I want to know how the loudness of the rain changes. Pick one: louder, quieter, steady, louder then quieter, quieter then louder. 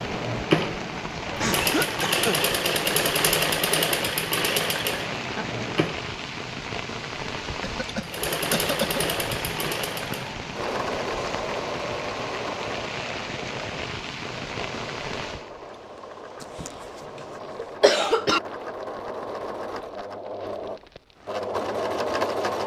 quieter.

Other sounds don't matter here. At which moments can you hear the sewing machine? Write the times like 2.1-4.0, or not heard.
0.0-6.0, 8.0-22.6.